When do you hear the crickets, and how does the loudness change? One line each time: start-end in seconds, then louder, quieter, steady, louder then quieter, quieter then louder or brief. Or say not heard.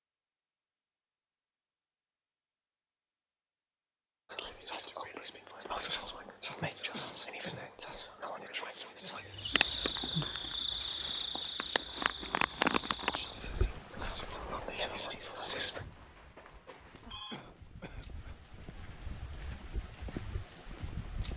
9.2-21.3 quieter then louder.